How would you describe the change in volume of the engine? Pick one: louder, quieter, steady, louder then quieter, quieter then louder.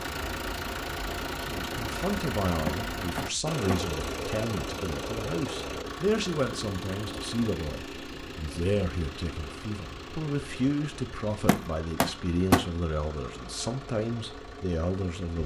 quieter.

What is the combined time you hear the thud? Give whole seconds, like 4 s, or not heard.
2 s.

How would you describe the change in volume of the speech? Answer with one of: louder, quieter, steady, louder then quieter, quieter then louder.
steady.